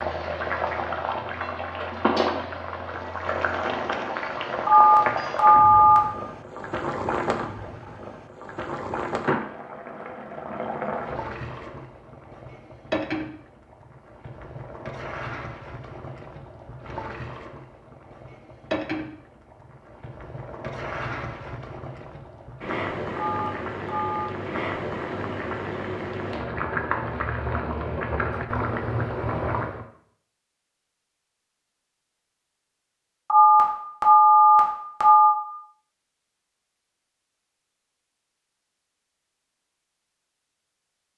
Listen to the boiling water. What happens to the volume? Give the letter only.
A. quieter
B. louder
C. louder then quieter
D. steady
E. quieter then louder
E.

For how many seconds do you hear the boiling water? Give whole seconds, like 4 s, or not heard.
30 s.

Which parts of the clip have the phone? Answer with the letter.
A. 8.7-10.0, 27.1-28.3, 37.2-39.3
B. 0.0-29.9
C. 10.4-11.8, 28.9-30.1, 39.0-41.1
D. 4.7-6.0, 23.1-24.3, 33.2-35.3
D.